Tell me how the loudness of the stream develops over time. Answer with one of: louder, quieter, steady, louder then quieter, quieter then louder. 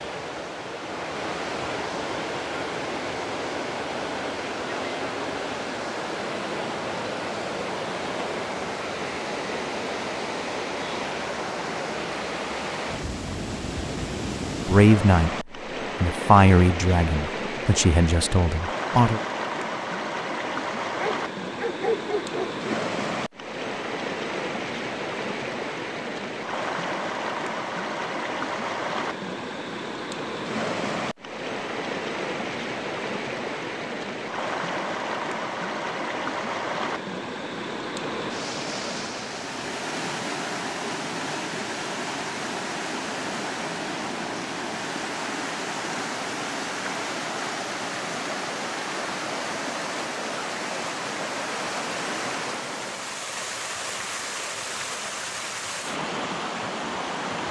steady.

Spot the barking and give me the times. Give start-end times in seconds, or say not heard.
20.9-22.6.